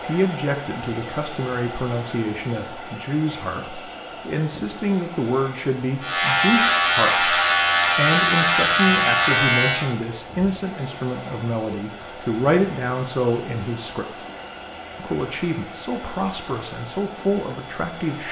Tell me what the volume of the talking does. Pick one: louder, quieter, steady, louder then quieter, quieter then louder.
steady.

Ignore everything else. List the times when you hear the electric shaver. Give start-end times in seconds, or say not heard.
6.0-9.9.